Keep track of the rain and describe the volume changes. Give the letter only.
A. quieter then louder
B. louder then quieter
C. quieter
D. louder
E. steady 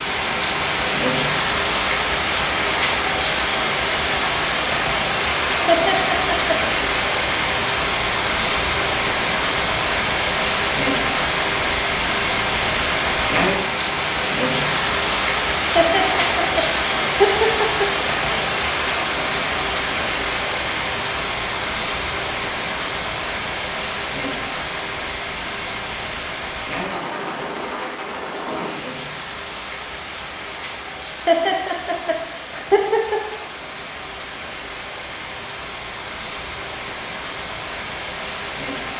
C.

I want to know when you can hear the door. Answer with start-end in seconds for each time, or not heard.
not heard.